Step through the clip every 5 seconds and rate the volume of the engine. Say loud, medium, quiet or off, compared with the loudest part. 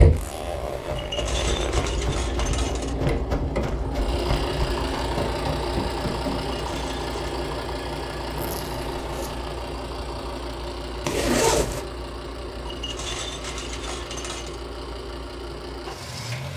loud, loud, medium, medium.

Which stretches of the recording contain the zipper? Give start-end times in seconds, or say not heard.
0.1-1.9, 8.3-9.4, 11.0-11.8.